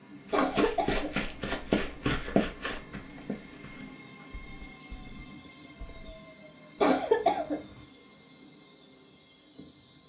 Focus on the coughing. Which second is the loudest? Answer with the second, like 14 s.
7 s.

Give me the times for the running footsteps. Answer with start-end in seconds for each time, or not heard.
0.2-6.2.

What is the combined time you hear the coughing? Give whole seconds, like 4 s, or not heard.
2 s.